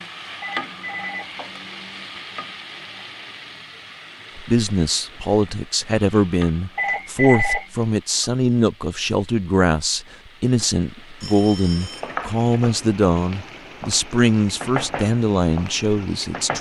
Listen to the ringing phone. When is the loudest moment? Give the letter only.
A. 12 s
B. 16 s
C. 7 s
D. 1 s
C.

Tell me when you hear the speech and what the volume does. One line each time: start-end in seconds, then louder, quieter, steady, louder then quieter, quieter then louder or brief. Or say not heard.
4.3-16.5 steady.